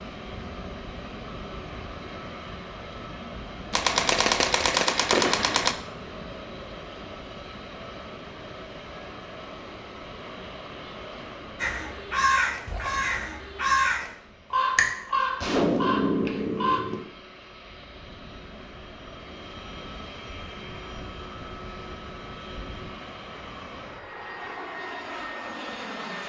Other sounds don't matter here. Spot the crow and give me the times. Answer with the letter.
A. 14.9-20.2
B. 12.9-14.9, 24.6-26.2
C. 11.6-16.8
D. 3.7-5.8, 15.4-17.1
C.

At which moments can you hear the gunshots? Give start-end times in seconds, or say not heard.
3.7-5.8, 15.4-17.1.